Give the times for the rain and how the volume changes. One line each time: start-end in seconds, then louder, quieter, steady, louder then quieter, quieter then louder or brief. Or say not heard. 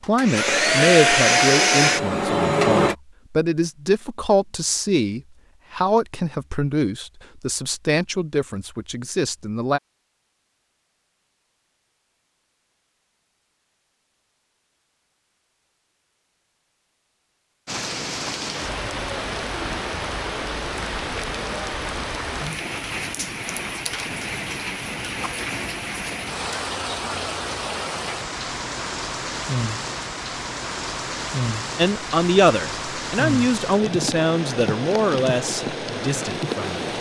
17.6-36.9 steady.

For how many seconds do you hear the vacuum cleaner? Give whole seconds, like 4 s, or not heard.
3 s.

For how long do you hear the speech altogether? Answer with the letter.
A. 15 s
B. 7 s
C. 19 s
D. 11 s
A.